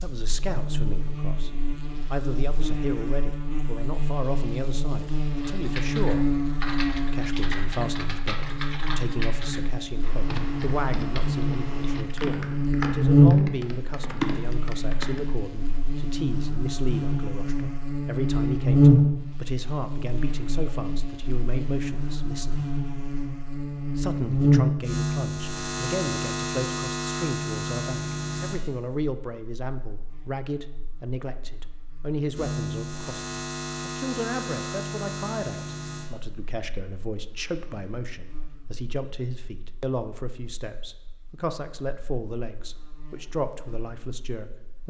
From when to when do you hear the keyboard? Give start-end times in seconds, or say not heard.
5.4-15.3.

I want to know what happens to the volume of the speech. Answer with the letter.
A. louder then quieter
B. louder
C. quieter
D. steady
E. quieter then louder
D.